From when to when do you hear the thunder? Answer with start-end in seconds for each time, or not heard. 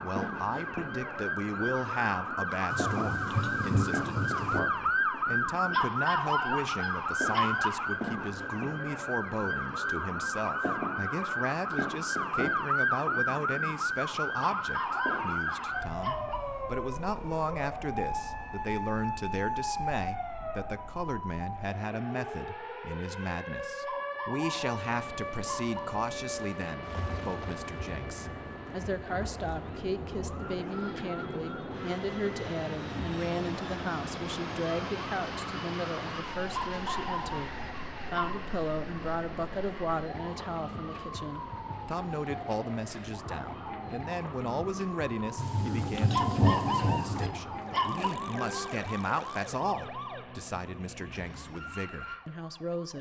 2.7-4.6, 26.8-29.6, 45.4-47.3.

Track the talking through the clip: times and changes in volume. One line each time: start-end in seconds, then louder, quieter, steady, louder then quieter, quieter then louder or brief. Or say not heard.
0.0-52.9 steady.